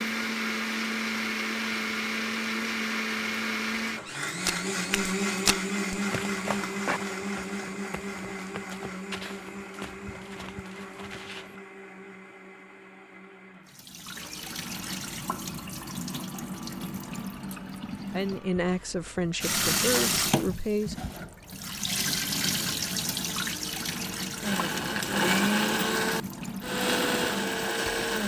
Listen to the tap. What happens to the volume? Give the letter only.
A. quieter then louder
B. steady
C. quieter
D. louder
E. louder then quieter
E.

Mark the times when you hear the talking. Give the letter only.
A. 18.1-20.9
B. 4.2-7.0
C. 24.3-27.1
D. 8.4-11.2
A.